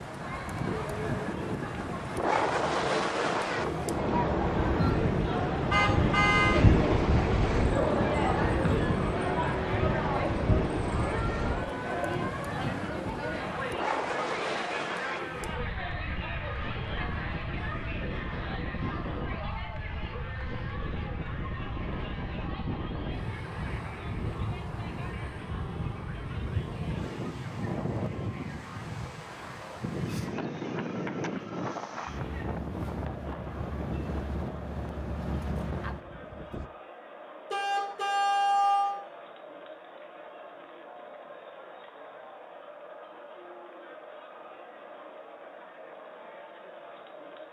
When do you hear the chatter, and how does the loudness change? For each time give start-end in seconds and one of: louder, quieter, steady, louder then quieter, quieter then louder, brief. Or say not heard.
0.1-47.4 quieter.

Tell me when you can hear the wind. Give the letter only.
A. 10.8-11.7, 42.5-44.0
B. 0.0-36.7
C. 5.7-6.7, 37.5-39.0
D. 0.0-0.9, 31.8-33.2
B.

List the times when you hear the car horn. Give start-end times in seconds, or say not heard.
5.7-6.7, 37.5-39.0.